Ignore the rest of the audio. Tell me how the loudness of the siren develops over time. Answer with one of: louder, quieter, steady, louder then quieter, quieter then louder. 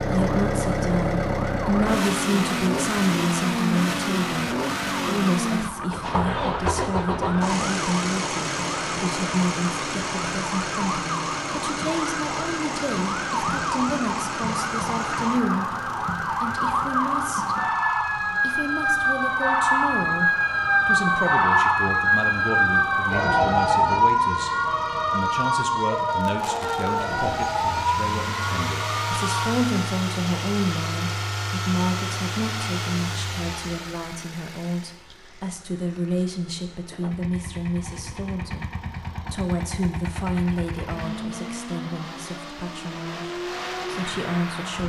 louder.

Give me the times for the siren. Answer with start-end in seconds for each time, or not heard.
0.0-29.6.